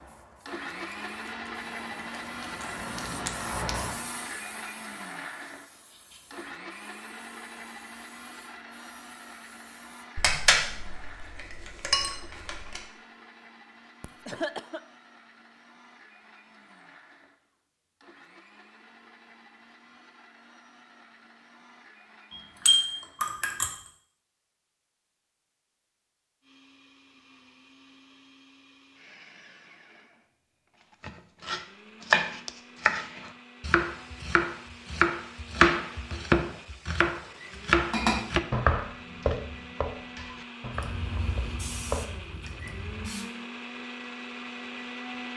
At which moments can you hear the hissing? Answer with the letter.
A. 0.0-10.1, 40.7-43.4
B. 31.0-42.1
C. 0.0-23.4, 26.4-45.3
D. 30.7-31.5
A.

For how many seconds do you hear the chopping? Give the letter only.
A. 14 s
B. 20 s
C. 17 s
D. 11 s
D.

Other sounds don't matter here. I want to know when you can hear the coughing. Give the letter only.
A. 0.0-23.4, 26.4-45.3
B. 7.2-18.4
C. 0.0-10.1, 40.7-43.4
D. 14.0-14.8
D.